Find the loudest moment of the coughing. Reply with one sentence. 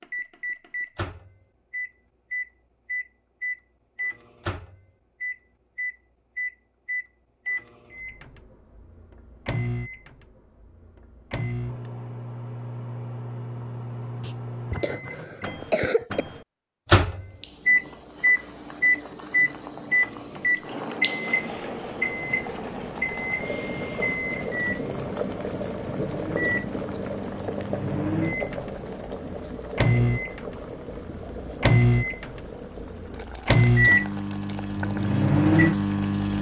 The loudest moment of the coughing is at 16 seconds.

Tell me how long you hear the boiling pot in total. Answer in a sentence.
The boiling pot can be heard for 19 seconds in total.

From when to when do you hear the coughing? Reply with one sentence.
You can hear the coughing from 14.2 to 16.2 s.